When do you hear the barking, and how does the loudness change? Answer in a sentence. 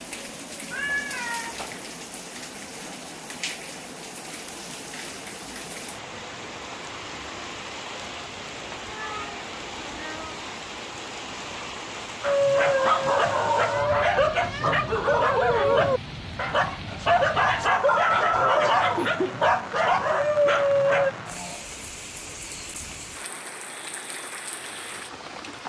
The barking can be heard from 12.2 to 21.1 s, at a steady volume.